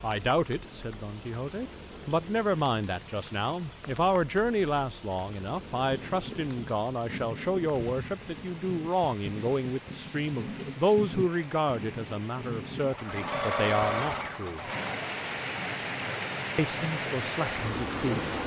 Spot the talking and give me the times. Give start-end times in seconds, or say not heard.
0.0-14.6, 16.6-18.4.